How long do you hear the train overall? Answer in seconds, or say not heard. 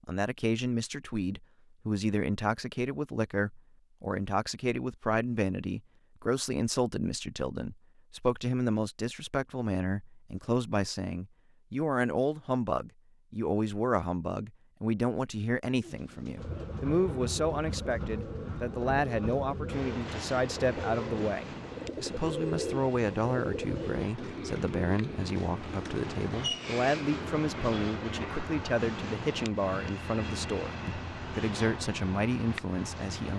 17 s.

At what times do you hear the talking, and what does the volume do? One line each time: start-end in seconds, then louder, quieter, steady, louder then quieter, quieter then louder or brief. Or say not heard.
0.1-33.3 steady.